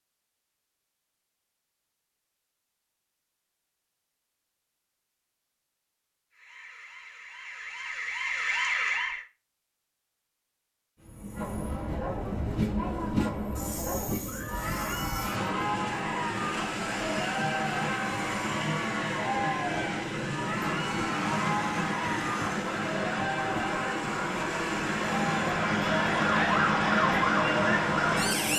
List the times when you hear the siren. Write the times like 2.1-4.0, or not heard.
6.3-9.2, 21.1-28.5.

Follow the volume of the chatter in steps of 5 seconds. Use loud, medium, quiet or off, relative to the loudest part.
off, off, loud, loud, loud, loud.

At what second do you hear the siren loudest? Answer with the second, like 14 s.
27 s.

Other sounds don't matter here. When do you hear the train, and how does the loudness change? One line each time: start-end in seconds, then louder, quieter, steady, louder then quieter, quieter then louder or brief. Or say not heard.
11.0-28.5 steady.